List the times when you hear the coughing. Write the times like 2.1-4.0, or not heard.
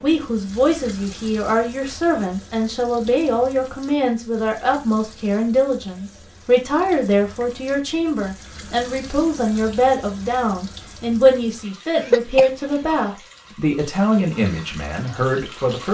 11.9-13.0.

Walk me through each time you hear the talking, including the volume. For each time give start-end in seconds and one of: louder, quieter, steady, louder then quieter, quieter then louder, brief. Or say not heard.
0.0-15.9 steady.